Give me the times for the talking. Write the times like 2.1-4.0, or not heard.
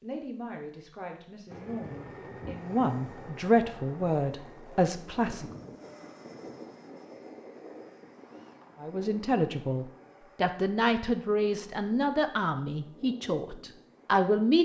0.0-5.5, 8.8-14.6.